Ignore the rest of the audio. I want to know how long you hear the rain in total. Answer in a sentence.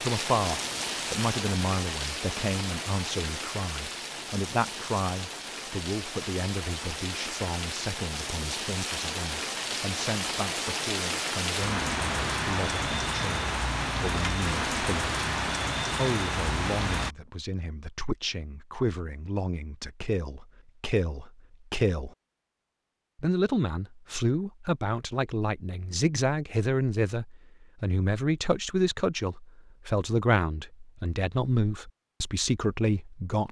The rain can be heard for 17 seconds in total.